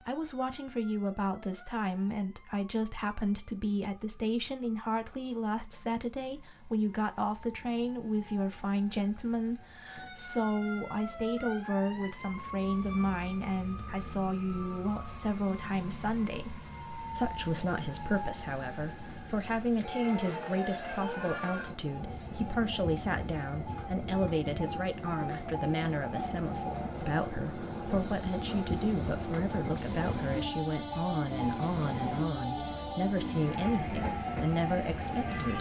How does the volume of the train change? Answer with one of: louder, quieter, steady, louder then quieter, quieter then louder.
louder.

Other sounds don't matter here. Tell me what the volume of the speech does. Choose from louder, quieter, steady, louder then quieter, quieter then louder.
steady.